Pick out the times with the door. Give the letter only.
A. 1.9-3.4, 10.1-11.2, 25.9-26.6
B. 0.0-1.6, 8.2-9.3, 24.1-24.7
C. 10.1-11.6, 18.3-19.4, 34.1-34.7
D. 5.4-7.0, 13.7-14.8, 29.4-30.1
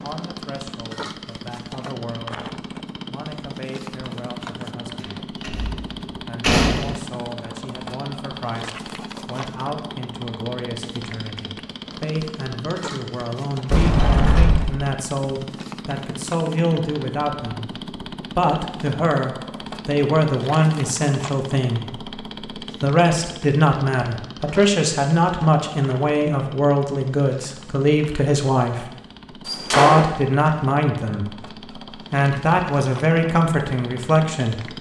D.